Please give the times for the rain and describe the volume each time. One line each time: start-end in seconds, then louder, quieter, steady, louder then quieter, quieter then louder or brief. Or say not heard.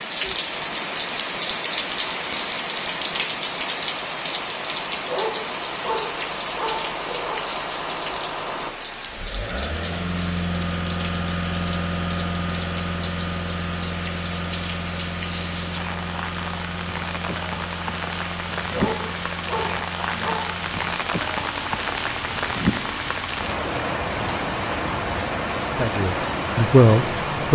0.0-27.5 quieter then louder.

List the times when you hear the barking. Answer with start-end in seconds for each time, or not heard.
5.0-7.4, 18.6-20.5.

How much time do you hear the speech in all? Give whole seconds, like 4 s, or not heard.
2 s.